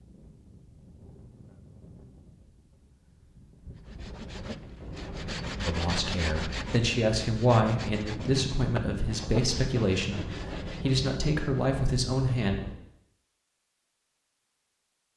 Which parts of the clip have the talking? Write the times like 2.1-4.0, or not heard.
5.7-12.6.